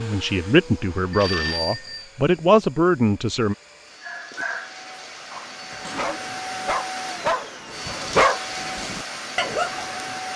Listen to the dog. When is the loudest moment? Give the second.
8 s.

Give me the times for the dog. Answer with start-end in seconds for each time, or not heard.
4.0-10.2.